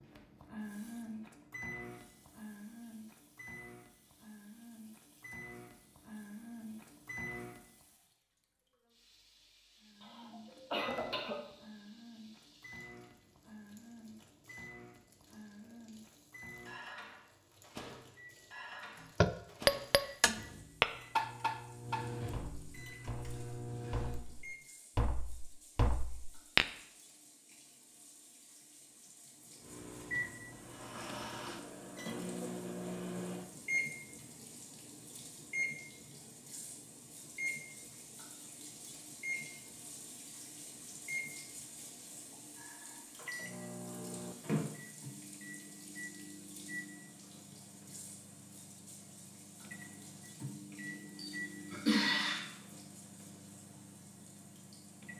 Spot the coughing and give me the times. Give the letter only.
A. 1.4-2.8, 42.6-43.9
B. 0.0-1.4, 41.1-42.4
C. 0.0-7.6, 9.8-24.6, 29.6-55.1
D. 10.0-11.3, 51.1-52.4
D.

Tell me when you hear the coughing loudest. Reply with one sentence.
The volume of the coughing peaks at 52 seconds.